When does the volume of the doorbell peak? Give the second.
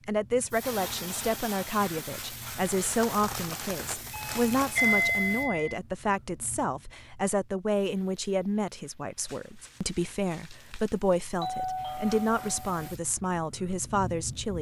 5 s.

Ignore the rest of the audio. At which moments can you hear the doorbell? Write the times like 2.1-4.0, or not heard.
4.1-5.8, 11.4-12.8.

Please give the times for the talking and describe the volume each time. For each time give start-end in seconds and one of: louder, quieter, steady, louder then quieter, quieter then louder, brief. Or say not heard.
0.1-14.5 steady.